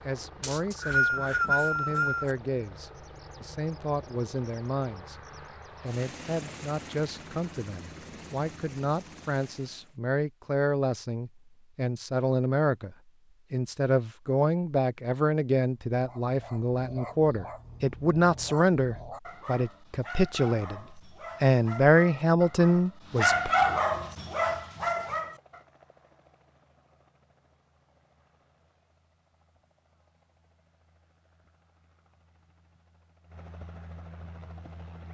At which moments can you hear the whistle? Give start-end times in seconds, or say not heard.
0.4-2.3.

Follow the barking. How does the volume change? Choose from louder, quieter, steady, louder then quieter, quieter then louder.
louder.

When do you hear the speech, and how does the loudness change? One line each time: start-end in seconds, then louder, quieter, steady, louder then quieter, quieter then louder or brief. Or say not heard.
0.1-5.2 steady
5.8-23.5 louder.